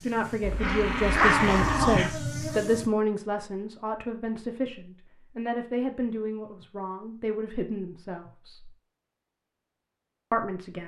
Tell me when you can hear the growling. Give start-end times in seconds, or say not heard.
0.4-2.1.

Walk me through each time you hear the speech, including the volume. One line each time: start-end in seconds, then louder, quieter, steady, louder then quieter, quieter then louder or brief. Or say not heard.
0.0-8.7 quieter
10.3-10.8 brief.